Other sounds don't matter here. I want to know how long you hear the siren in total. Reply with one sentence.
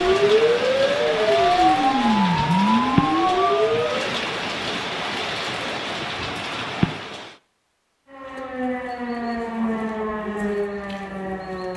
The siren can be heard for 8 seconds in total.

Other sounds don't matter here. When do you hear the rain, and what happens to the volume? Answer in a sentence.
You can hear the rain from 0.0 to 7.3 s, at a steady volume.